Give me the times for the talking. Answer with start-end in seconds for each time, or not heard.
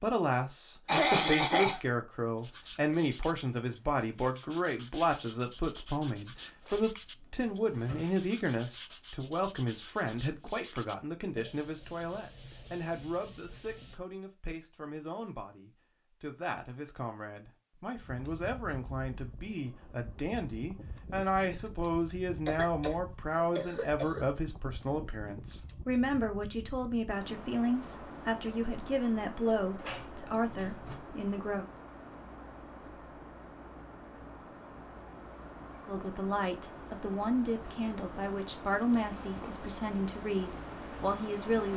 0.0-31.6, 35.9-41.7.